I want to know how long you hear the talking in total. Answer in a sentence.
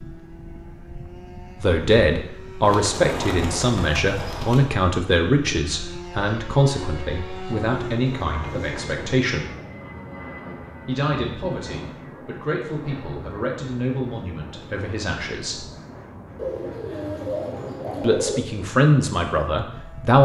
The talking can be heard for 15 seconds in total.